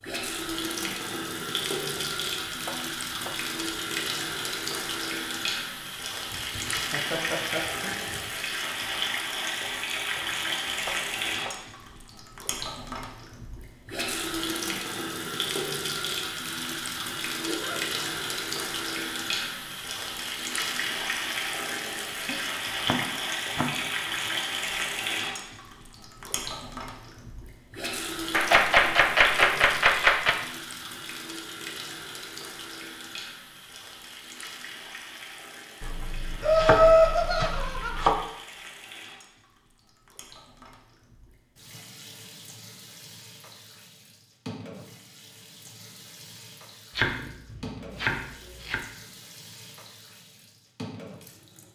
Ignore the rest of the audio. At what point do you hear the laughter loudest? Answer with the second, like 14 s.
37 s.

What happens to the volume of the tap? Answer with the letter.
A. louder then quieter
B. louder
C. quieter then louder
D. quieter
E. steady
D.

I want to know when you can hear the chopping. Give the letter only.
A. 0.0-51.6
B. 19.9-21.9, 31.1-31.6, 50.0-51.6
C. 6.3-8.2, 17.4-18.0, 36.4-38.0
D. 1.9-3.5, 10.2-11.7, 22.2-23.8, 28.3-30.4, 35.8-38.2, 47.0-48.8
D.